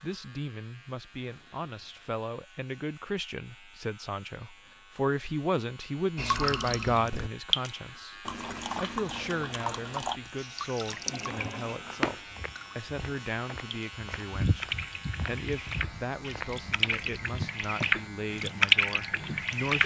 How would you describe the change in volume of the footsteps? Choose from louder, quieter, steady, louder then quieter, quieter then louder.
louder then quieter.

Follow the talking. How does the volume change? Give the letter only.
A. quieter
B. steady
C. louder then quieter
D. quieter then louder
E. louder
C.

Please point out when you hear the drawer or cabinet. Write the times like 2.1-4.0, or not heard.
10.9-12.2.